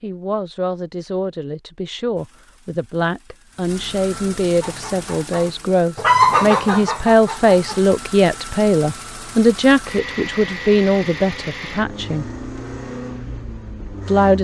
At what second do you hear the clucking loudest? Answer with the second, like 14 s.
6 s.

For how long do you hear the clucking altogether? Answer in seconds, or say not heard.
3 s.